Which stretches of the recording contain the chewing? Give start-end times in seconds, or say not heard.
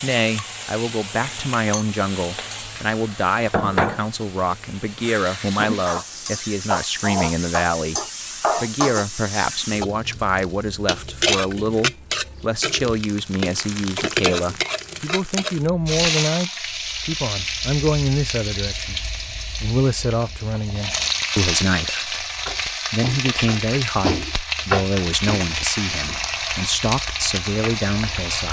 not heard.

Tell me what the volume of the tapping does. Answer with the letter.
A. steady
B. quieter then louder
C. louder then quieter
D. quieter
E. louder
C.